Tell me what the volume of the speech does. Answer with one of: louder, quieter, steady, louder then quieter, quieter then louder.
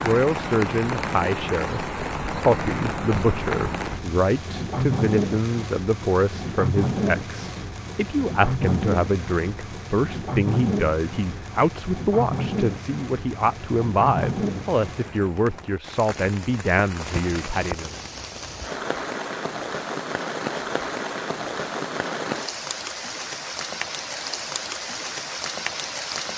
steady.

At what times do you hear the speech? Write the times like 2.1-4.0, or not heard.
0.0-17.9.